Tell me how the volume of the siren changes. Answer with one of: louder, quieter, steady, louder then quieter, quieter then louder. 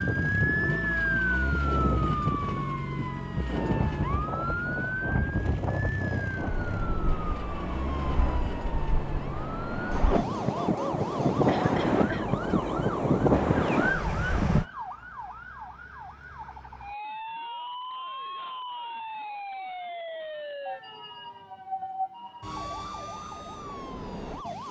quieter.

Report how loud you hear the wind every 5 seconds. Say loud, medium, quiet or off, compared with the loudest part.
medium, medium, loud, off, off.